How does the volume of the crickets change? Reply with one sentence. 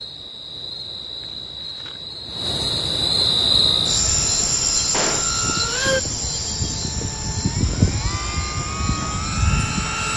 The loudness of the crickets goes up, then down.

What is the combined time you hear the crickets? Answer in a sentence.
You can hear the crickets for 10 seconds altogether.